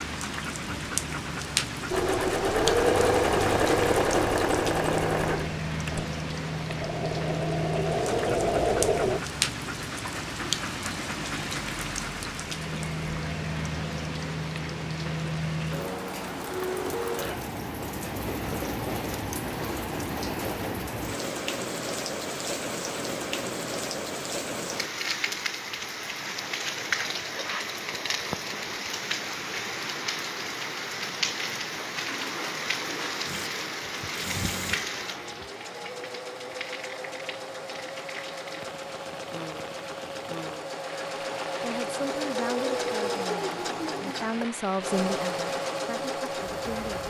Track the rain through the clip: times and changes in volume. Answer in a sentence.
You can hear the rain from 0.0 to 47.0 s, getting quieter.